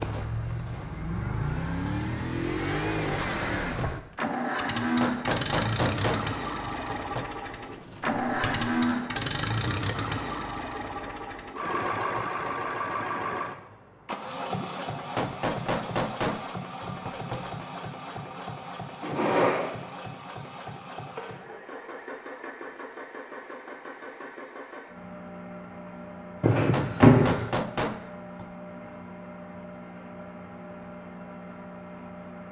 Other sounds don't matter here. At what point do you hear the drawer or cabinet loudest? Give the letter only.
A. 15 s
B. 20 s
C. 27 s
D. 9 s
C.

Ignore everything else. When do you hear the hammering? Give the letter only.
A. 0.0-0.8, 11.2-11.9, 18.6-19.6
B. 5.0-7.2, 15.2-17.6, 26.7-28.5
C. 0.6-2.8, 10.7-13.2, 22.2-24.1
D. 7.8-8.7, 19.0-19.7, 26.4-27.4
B.